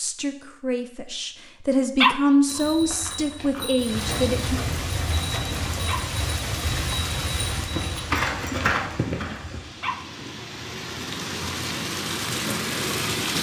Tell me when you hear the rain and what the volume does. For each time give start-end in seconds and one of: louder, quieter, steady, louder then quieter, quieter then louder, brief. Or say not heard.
3.8-13.3 quieter then louder.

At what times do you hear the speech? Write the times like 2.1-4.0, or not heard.
0.0-4.6.